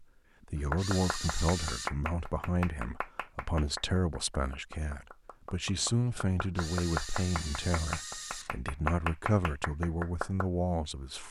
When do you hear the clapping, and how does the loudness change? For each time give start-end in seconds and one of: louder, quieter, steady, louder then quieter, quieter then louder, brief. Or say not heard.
0.7-10.5 quieter then louder.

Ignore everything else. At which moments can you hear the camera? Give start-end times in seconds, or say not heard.
0.8-1.9, 6.5-8.5.